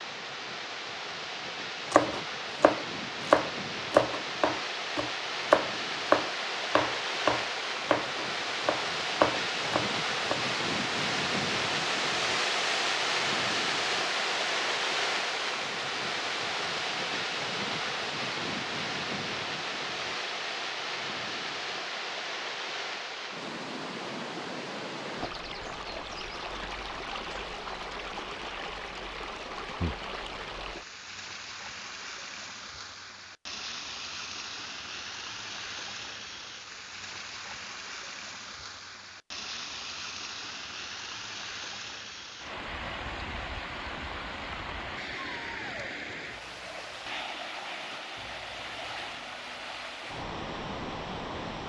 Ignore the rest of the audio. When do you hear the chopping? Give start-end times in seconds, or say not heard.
1.9-10.4.